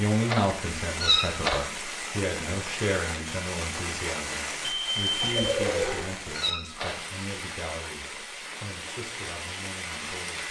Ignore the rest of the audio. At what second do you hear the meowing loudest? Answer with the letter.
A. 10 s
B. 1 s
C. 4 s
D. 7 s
B.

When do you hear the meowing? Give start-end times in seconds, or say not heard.
0.2-1.8, 5.6-7.1.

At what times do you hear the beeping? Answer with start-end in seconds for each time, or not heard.
4.6-6.2.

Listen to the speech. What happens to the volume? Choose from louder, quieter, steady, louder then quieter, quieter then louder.
quieter.